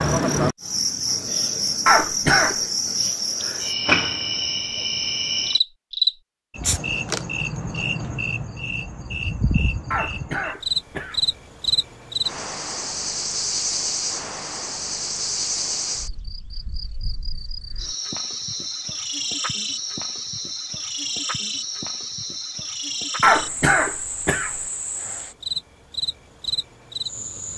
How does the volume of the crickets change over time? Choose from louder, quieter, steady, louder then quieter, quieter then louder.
quieter.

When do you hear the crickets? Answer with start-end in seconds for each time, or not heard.
0.0-27.5.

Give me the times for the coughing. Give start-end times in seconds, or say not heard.
1.9-2.5, 9.9-11.2, 23.2-24.6.